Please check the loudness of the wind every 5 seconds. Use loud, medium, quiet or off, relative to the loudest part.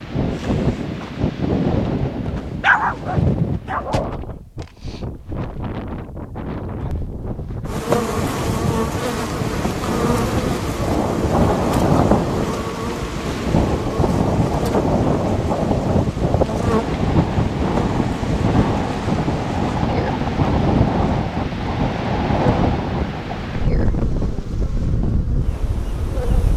loud, medium, loud, loud, loud, medium.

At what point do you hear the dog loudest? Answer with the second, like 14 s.
3 s.